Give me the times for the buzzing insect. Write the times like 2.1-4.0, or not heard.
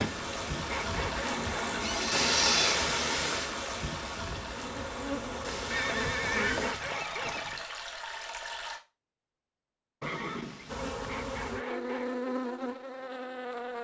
0.0-1.6, 4.4-6.8, 10.7-13.7.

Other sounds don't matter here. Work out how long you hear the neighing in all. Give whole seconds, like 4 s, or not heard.
4 s.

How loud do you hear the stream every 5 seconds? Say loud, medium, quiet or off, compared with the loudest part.
loud, medium, off.